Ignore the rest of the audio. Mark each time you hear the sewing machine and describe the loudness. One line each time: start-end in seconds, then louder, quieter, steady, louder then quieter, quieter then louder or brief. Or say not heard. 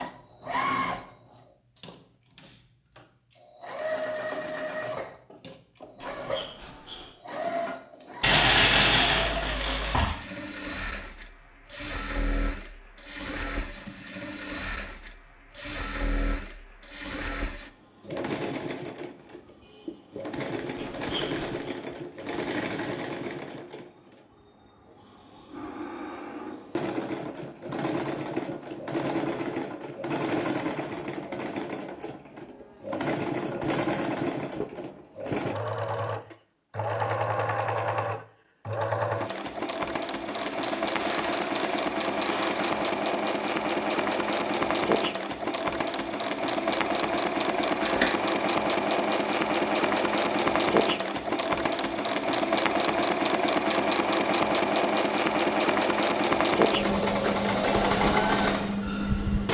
0.0-59.4 louder.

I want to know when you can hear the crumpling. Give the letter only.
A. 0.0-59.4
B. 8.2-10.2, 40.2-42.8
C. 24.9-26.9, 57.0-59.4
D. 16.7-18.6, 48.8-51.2
B.